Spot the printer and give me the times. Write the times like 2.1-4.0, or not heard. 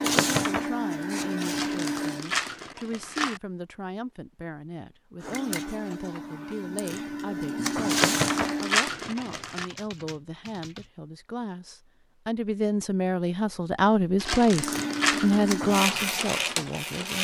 0.0-2.4, 5.2-8.8, 14.5-17.1.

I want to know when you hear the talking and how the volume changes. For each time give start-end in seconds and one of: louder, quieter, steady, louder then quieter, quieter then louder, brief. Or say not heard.
0.2-17.1 louder.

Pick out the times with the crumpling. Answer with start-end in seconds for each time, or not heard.
1.4-3.4, 7.8-9.7, 14.2-15.5.